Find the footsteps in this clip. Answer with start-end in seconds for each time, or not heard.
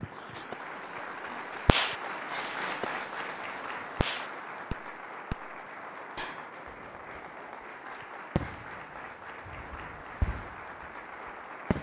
not heard.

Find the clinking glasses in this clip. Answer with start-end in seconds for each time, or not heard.
not heard.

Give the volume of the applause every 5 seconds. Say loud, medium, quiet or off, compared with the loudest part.
loud, medium, medium.